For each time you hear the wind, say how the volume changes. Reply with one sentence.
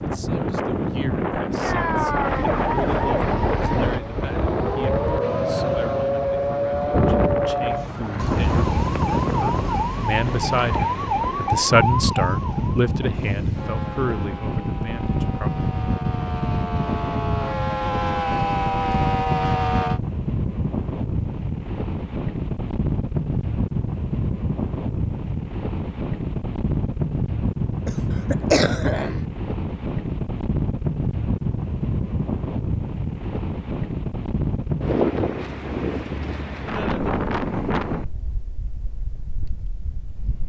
The wind can be heard from 0.0 to 40.4 s, at a steady volume.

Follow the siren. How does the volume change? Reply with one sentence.
The loudness of the siren goes down, then up.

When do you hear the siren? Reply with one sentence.
The siren can be heard from 1.6 to 20.0 s.